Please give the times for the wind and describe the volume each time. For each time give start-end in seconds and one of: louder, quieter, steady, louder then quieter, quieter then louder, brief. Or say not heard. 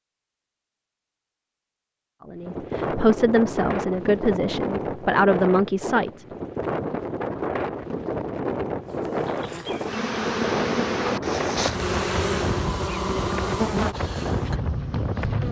2.4-15.4 steady.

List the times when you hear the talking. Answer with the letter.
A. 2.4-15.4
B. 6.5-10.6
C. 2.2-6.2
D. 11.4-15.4
C.